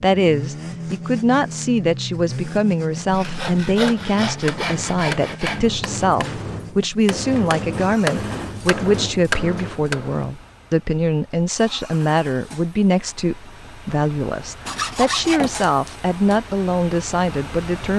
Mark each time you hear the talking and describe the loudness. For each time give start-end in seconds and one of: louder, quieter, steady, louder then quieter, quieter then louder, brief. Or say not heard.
0.0-17.9 steady.